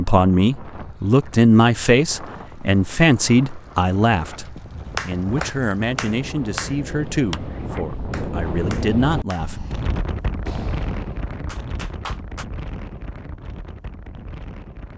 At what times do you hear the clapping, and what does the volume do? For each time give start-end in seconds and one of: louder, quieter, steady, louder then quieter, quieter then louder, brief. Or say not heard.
5.0-12.4 quieter.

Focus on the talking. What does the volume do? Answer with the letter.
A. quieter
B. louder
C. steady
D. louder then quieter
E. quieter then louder
A.